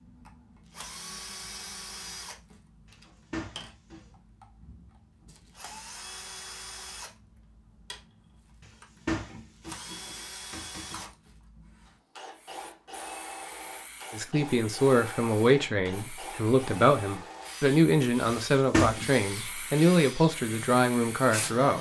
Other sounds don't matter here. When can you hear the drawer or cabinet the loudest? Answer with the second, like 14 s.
19 s.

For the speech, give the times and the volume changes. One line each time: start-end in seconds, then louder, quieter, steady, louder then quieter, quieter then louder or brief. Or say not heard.
14.1-21.7 steady.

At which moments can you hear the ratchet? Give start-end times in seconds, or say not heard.
not heard.